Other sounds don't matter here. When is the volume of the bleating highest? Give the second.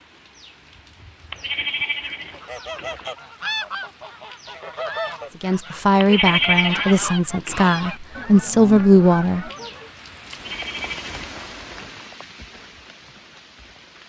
6 s.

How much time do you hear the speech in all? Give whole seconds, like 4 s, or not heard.
4 s.